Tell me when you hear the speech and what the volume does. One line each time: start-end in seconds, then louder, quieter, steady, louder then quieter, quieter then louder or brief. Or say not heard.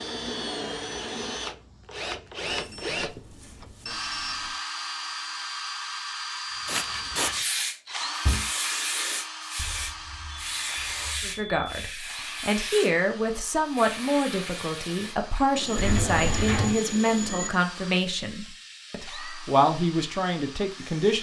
11.2-21.1 steady.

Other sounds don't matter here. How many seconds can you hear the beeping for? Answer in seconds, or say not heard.
6 s.